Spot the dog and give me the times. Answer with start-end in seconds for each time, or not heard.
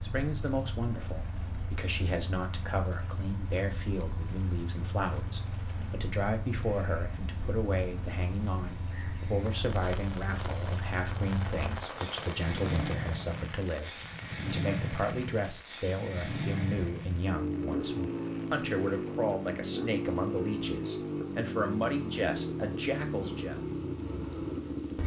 not heard.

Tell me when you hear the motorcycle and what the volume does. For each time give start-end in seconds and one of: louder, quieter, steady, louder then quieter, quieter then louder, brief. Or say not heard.
0.0-25.0 louder.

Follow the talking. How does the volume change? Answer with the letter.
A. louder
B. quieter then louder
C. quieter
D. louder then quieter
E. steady
E.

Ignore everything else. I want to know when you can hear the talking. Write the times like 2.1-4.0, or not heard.
0.0-23.6.